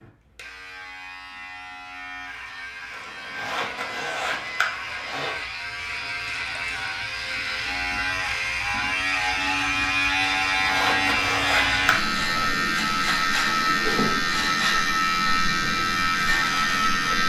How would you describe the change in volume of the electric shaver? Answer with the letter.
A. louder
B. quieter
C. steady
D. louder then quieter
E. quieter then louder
A.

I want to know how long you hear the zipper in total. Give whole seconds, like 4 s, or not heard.
5 s.